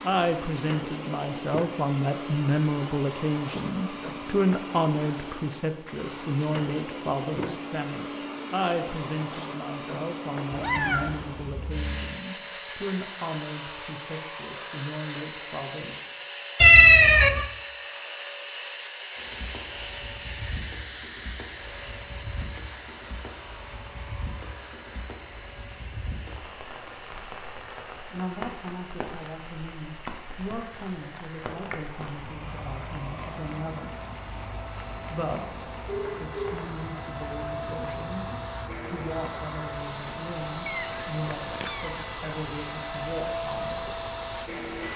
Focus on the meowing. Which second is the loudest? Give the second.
17 s.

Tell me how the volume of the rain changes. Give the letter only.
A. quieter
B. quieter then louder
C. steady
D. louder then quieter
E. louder
C.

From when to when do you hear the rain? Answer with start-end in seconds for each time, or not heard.
19.1-44.9.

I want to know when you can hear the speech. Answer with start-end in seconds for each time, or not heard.
0.0-16.0, 28.1-34.0, 35.1-38.2, 38.9-43.9.